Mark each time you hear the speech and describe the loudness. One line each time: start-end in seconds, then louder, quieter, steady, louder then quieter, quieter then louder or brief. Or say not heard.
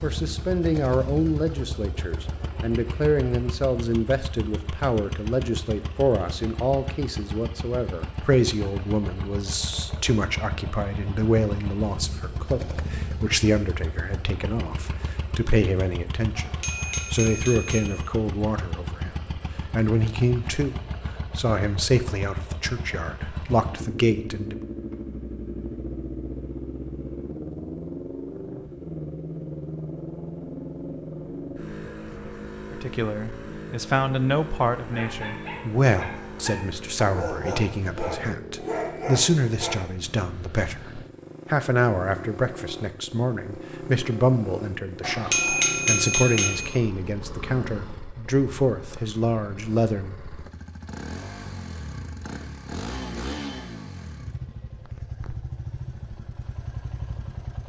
0.0-24.6 steady
32.7-50.1 steady.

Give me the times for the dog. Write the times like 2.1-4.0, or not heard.
34.7-39.8.